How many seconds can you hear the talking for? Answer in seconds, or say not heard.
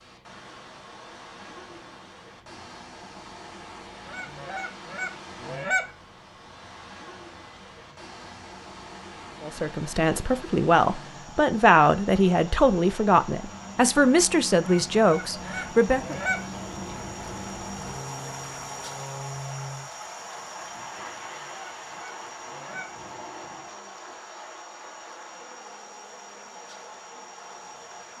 7 s.